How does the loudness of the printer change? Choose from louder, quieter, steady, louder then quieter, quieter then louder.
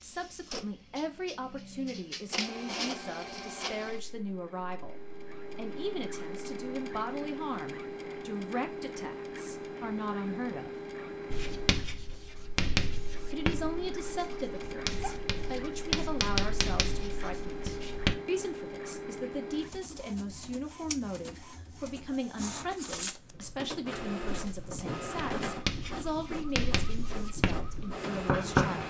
steady.